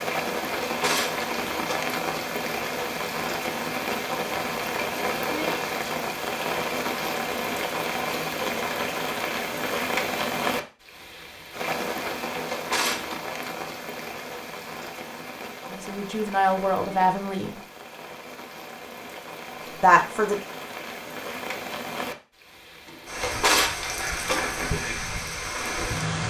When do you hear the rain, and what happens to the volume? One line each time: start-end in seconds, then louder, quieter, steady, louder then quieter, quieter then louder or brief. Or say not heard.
0.0-26.2 quieter then louder.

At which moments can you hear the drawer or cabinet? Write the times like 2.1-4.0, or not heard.
0.5-1.9, 12.4-13.2, 22.9-24.6.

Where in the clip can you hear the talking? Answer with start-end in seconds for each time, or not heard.
15.7-17.6, 19.8-20.4.